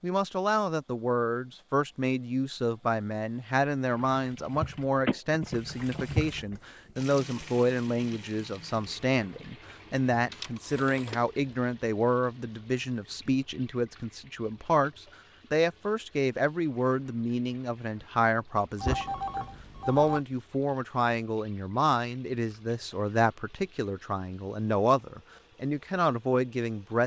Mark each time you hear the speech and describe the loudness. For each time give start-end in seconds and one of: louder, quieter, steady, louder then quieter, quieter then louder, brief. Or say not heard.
0.0-27.0 steady.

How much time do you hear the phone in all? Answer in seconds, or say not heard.
3 s.